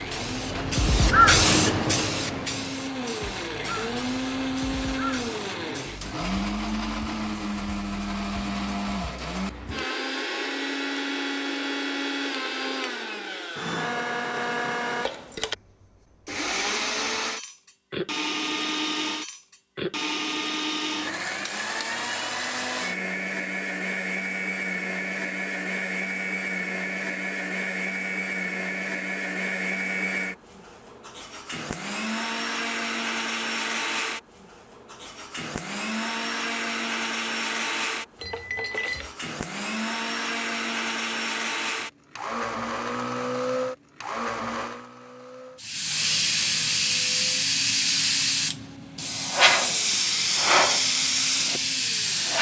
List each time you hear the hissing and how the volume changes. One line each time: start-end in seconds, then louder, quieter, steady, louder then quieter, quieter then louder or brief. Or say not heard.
0.0-6.2 quieter
45.5-52.3 steady.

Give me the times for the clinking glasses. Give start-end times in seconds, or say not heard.
38.1-39.1.